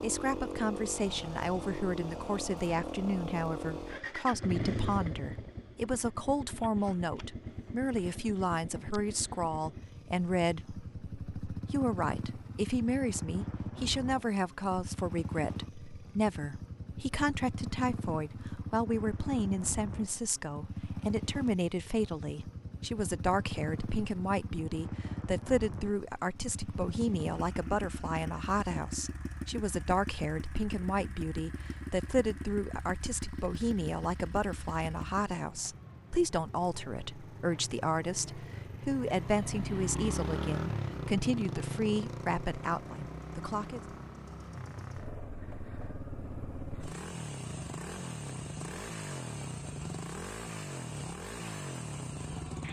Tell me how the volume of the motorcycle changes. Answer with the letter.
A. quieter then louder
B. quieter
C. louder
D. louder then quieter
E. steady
E.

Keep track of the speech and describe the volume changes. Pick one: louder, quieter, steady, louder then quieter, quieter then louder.
steady.